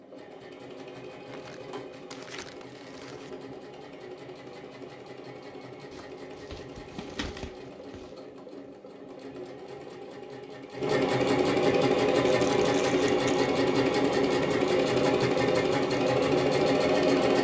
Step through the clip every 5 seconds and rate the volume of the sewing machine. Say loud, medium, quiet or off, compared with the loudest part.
quiet, quiet, loud, loud.